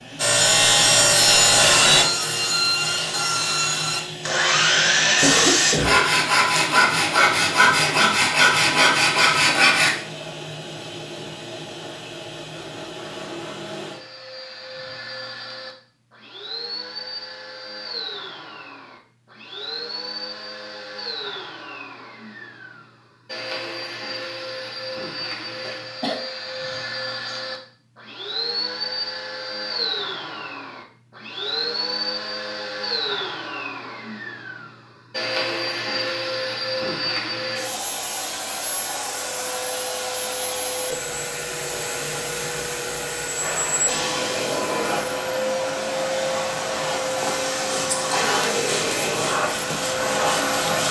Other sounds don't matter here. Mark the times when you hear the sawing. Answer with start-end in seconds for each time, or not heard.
0.1-9.9, 47.6-50.8.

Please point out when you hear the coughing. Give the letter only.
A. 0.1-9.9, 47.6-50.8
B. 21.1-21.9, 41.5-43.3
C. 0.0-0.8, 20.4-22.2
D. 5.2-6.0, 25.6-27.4
D.